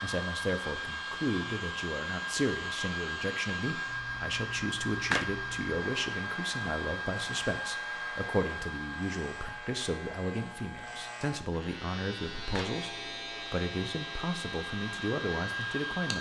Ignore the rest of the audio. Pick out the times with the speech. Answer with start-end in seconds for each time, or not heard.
0.0-16.1.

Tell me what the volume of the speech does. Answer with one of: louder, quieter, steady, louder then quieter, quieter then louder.
steady.